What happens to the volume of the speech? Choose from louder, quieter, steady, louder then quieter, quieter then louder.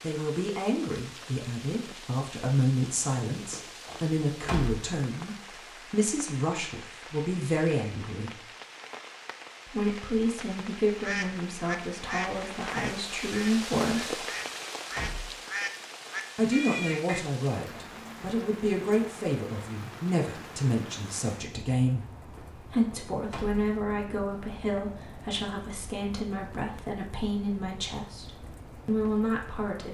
steady.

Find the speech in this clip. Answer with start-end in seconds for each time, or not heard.
0.0-8.4, 9.7-14.2, 16.4-22.1, 22.6-29.8.